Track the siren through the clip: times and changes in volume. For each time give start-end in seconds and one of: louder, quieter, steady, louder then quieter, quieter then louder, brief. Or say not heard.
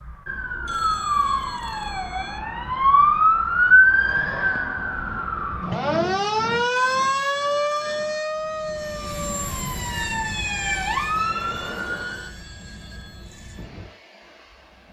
0.0-12.3 louder then quieter.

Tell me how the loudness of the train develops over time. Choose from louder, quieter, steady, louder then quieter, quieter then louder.
quieter.